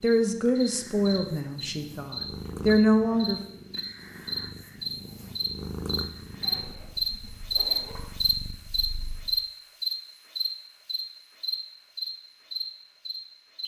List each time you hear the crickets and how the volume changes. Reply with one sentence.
You can hear the crickets from 0.0 to 13.6 s, getting louder then quieter.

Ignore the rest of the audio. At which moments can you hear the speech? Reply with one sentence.
The speech can be heard from 0.0 to 3.4 s.